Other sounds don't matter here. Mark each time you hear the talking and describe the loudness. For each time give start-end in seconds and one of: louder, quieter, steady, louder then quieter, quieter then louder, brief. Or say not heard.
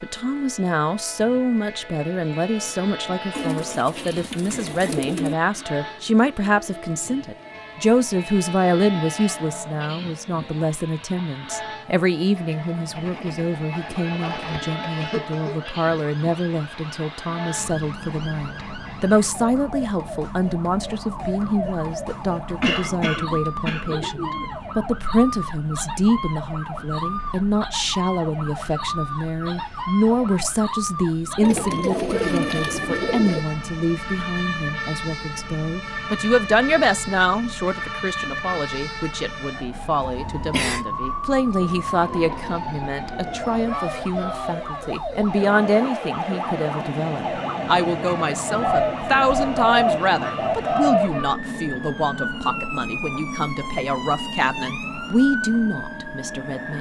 0.0-56.7 steady.